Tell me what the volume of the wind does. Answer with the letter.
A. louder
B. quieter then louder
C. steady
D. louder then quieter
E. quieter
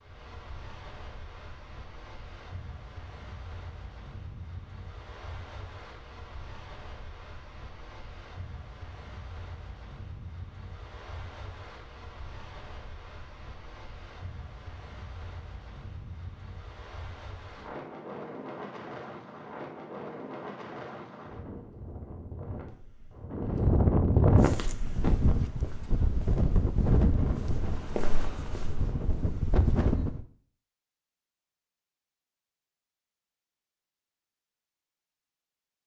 A.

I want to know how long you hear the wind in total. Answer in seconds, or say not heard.
30 s.